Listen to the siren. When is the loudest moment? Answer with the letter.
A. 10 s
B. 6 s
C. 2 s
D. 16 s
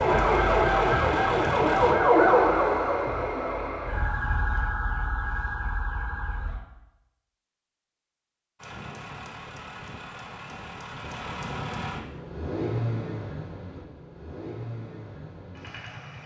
C.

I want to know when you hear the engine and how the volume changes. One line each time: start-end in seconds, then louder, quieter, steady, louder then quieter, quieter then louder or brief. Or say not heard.
0.0-1.9 brief
8.6-16.2 louder then quieter.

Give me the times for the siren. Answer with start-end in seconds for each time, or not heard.
0.0-6.6.